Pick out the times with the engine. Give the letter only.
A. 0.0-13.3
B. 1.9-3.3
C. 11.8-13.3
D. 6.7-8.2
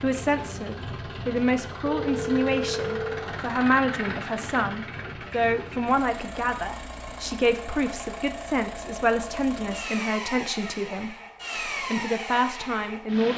A.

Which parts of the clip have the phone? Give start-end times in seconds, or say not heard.
1.9-3.3.